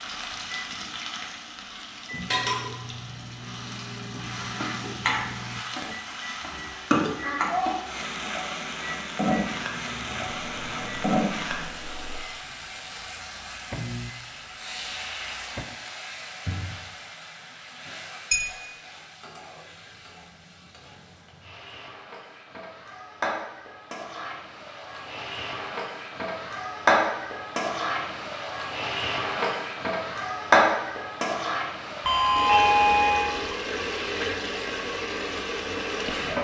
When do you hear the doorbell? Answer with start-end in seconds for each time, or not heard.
32.0-33.5.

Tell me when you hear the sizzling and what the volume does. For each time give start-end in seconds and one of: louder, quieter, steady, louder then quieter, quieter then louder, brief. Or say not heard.
0.0-36.3 quieter then louder.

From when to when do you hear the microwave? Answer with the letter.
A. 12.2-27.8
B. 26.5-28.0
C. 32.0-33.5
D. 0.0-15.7
D.